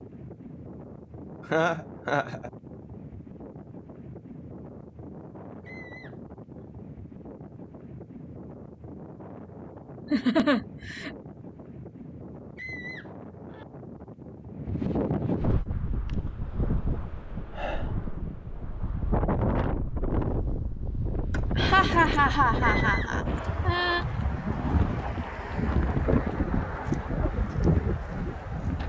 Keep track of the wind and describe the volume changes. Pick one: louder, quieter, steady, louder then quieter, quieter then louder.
louder.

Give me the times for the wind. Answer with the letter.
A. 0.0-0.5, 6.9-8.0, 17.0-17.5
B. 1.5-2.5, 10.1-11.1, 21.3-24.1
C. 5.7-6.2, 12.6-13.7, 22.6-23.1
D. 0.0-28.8
D.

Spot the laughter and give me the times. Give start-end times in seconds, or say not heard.
1.5-2.5, 10.1-11.1, 21.3-24.1.